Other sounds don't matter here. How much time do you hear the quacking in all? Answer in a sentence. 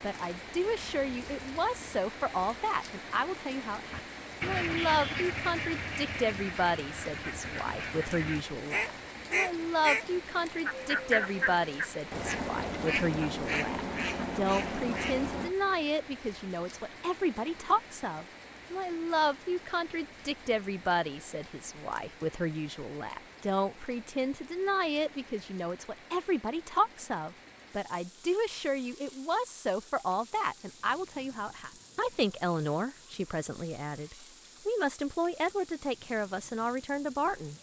The quacking can be heard for 12 seconds in total.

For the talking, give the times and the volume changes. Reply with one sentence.
You can hear the talking from 0.0 to 37.5 s, at a steady volume.